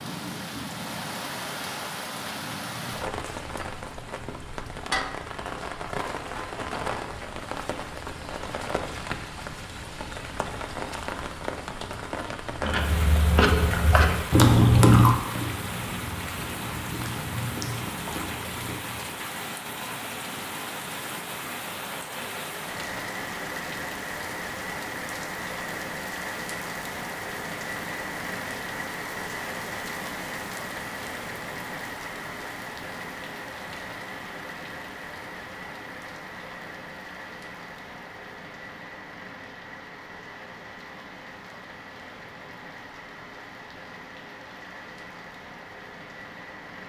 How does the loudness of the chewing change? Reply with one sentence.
The volume of the chewing goes up, then down.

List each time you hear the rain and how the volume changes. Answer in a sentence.
The rain can be heard from 0.0 to 46.8 s, getting quieter.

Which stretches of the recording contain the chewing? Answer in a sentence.
The chewing can be heard from 12.6 to 19.1 s.